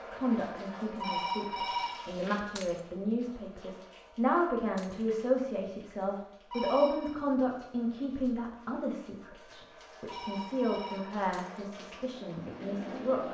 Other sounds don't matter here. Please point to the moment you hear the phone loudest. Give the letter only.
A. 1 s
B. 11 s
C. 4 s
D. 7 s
A.